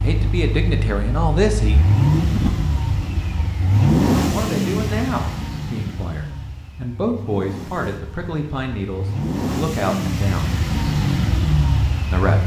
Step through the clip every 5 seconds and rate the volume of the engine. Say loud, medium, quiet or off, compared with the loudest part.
loud, medium, loud.